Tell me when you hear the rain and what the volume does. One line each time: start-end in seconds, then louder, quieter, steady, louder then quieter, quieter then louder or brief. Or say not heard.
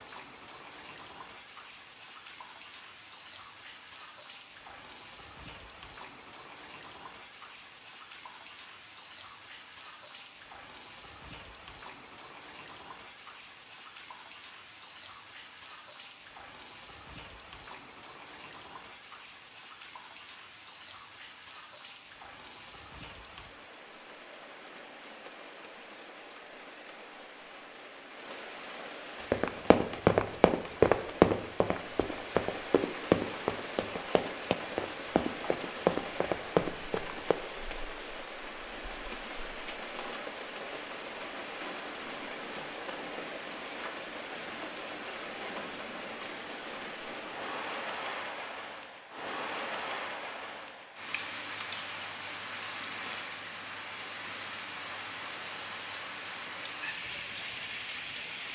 0.0-58.4 louder.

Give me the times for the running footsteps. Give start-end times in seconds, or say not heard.
29.3-37.4.